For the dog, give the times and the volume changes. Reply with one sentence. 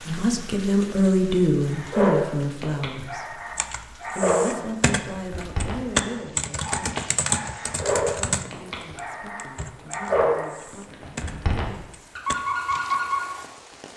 The dog can be heard from 1.7 to 13.3 s, at a steady volume.